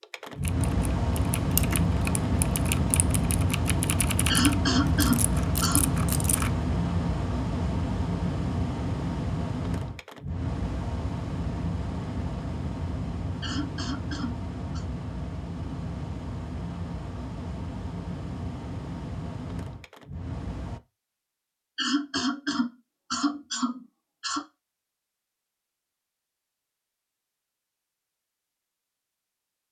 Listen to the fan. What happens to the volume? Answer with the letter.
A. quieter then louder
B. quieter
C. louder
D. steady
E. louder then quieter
B.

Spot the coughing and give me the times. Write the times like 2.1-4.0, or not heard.
4.2-5.8, 13.4-14.8, 21.8-24.4.